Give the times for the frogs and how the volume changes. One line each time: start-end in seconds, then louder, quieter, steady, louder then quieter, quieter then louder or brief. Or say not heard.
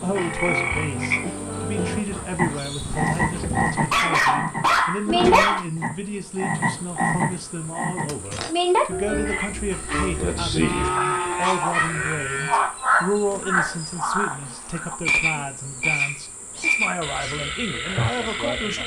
0.0-18.8 steady.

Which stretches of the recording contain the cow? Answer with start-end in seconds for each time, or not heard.
2.0-3.7, 10.6-12.7.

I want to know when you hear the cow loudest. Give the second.
11 s.